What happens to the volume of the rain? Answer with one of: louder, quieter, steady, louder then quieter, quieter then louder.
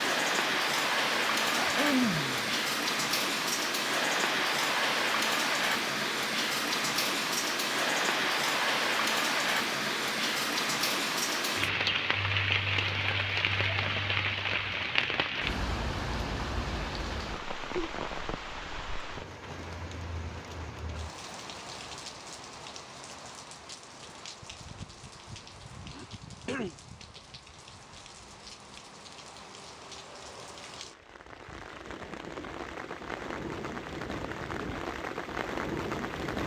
quieter then louder.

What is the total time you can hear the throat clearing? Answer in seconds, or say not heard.
2 s.